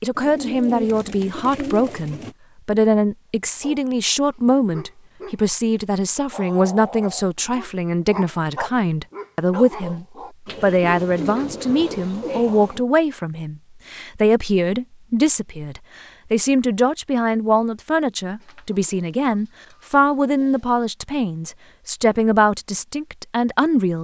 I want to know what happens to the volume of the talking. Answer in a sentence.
The volume of the talking stays about the same.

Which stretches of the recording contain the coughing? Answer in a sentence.
You can't hear the coughing here.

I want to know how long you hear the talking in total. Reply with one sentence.
You can hear the talking for 24 seconds altogether.